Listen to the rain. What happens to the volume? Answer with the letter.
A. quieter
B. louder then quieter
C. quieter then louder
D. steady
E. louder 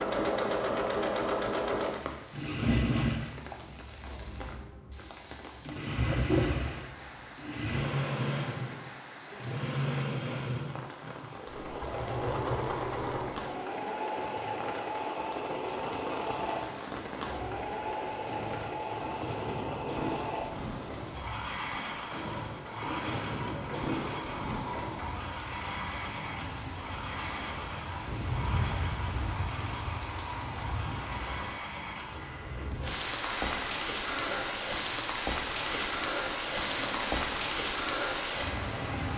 E.